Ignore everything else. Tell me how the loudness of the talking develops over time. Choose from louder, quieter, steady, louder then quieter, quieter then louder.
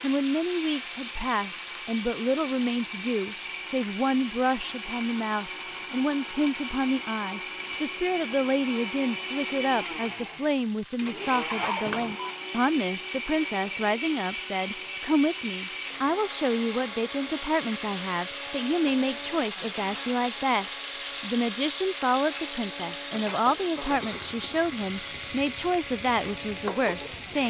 steady.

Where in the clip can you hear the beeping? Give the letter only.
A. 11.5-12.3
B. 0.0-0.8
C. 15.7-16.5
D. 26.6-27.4
A.